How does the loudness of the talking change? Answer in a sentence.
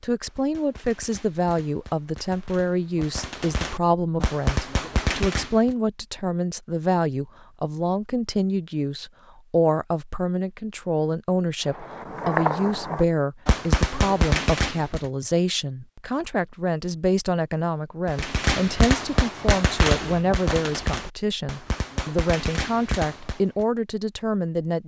The volume of the talking stays about the same.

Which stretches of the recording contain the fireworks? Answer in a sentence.
The fireworks can be heard from 0.2 to 5.8 s, from 11.7 to 15.1 s and from 18.1 to 23.6 s.